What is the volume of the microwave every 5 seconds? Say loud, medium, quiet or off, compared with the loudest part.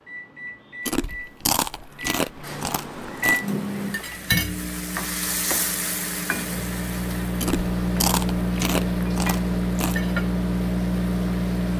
medium, loud, loud.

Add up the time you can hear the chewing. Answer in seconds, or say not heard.
5 s.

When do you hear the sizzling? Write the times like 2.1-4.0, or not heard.
3.4-11.7.